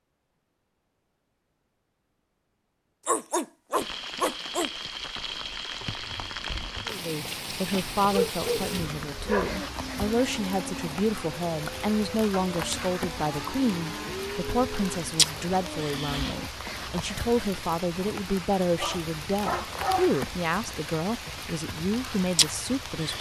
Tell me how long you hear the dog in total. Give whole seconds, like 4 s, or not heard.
5 s.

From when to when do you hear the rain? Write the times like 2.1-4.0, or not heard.
3.8-23.1.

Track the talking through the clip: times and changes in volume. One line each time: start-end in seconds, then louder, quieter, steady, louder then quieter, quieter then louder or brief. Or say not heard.
6.8-23.1 steady.